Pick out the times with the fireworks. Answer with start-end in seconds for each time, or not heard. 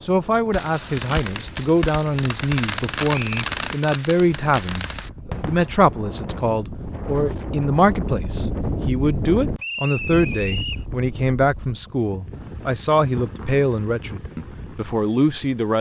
0.5-6.5.